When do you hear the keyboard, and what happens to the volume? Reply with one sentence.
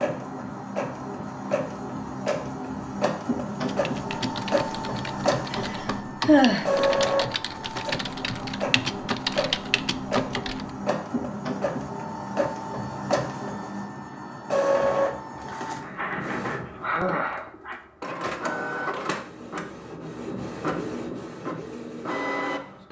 You can hear the keyboard from 3.6 to 10.7 s, getting louder.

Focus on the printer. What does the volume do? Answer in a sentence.
The loudness of the printer stays about the same.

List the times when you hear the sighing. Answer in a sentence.
The sighing can be heard from 5.5 to 6.7 s and from 15.5 to 17.8 s.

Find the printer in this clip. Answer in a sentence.
You can hear the printer from 0.0 to 22.8 s.